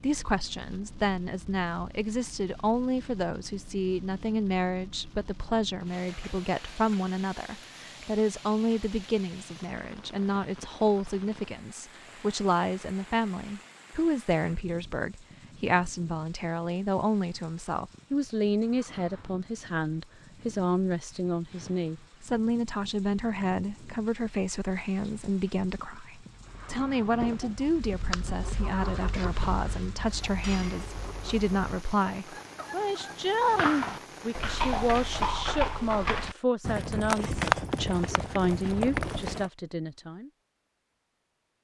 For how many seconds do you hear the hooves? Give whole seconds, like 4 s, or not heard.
6 s.